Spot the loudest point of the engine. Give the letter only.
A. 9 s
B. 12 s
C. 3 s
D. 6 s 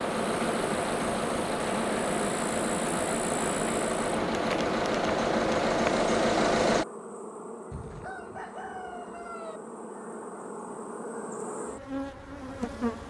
D.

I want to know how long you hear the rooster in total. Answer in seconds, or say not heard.
2 s.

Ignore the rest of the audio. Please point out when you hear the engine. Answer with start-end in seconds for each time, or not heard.
0.0-6.8.